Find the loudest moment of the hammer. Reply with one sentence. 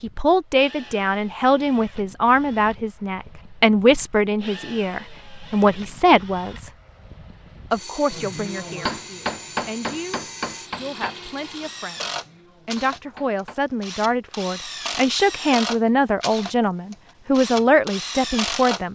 The loudest moment of the hammer is at 9 seconds.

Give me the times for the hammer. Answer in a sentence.
You can hear the hammer from 8.1 to 13.6 s.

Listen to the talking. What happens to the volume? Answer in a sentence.
The loudness of the talking goes down, then up.